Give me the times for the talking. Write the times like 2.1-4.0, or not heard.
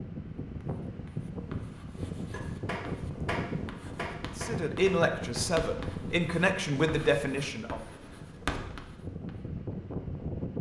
4.3-7.8.